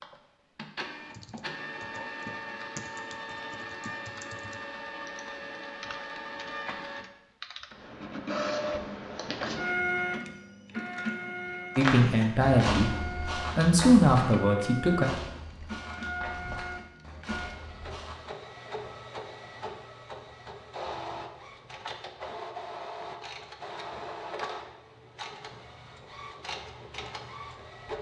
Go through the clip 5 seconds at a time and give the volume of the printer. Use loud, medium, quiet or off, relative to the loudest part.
medium, loud, loud, medium, medium, medium.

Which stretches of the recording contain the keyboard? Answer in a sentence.
The keyboard can be heard from 1.1 to 7.7 s.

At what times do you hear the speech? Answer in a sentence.
You can hear the speech from 11.8 to 15.1 s.